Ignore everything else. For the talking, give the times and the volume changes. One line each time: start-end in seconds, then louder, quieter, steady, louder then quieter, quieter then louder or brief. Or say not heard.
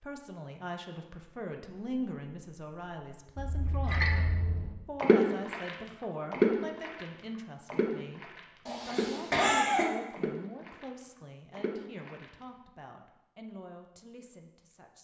0.0-15.0 quieter.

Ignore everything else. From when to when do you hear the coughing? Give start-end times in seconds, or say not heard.
8.7-9.9.